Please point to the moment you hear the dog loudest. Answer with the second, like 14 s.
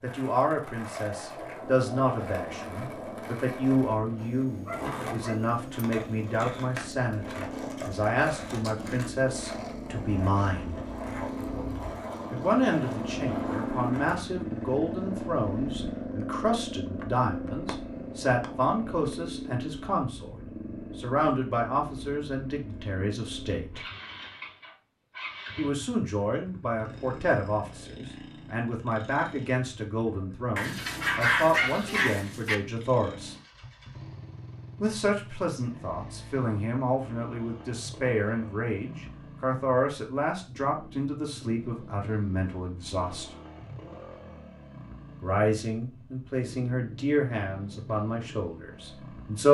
31 s.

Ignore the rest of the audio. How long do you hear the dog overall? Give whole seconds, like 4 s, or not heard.
4 s.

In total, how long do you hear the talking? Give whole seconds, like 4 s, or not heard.
42 s.